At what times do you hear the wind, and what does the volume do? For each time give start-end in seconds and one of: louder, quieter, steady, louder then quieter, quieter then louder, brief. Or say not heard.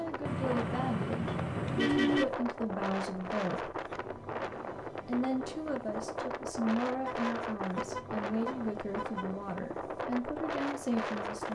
0.0-11.4 steady.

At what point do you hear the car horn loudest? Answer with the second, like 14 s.
2 s.